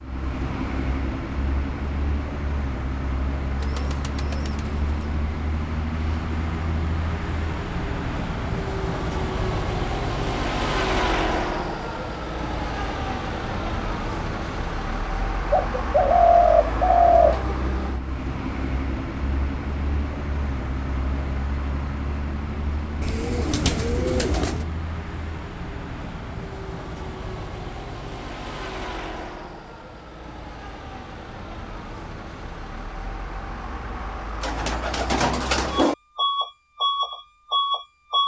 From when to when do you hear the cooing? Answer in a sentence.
You can hear the cooing from 3.6 to 5.0 s, from 15.5 to 17.4 s, from 23.0 to 24.6 s and from 34.4 to 36.0 s.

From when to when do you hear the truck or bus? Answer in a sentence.
The truck or bus can be heard from 0.0 to 38.2 s.